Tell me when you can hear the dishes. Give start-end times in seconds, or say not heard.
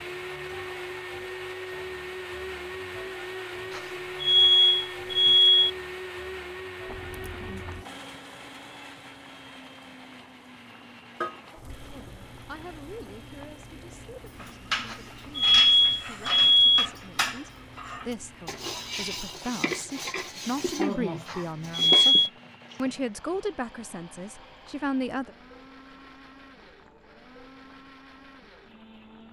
14.3-22.8.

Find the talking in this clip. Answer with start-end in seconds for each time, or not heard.
11.9-25.4.